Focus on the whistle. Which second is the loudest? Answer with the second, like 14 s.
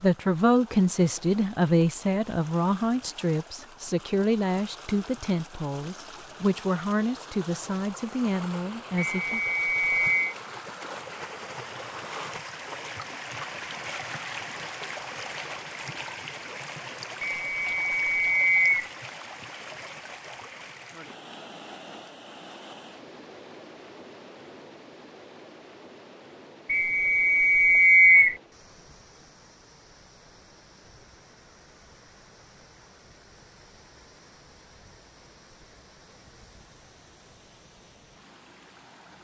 28 s.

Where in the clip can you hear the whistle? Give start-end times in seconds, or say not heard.
9.2-10.3, 17.2-18.9, 26.6-28.4.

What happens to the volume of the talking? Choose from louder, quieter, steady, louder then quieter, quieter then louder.
quieter.